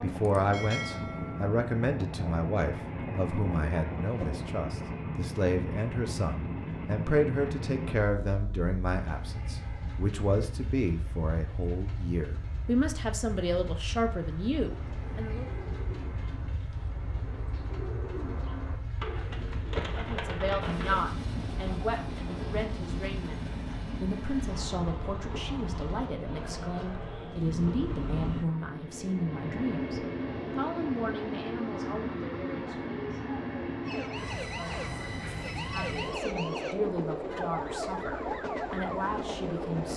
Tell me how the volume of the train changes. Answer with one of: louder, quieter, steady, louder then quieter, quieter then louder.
quieter then louder.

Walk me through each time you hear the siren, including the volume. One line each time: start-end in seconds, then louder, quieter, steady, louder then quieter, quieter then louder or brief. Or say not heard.
33.8-39.9 steady.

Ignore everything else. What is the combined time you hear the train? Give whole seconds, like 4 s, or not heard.
40 s.